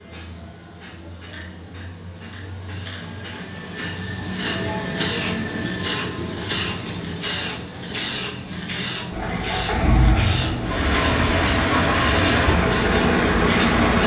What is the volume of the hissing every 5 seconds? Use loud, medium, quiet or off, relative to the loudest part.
medium, loud, loud.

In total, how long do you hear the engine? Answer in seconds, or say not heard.
5 s.